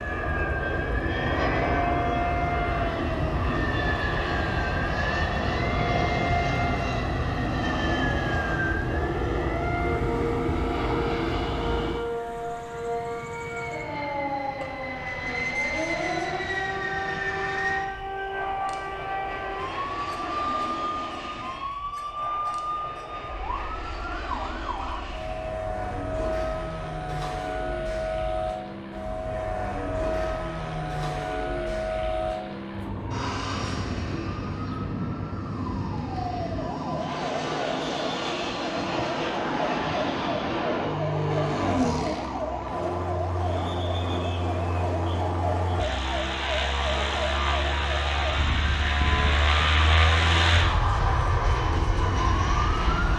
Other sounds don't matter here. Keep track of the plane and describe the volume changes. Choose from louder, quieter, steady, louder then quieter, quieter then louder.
quieter then louder.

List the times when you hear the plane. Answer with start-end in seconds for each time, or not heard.
0.0-53.1.